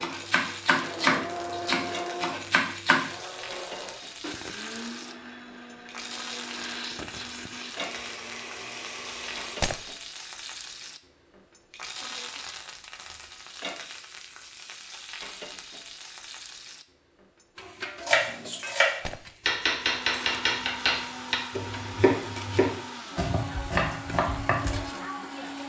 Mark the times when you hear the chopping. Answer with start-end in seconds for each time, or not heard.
0.0-3.1, 18.1-24.9.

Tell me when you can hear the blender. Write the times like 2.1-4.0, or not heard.
0.0-9.8, 19.9-25.6.